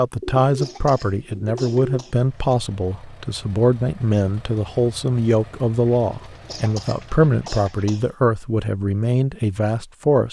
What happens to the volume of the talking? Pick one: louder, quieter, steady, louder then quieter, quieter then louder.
steady.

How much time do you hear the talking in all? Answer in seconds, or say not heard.
10 s.